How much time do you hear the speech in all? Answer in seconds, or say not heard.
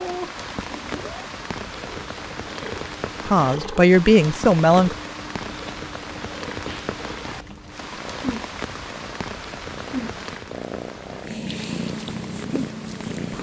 2 s.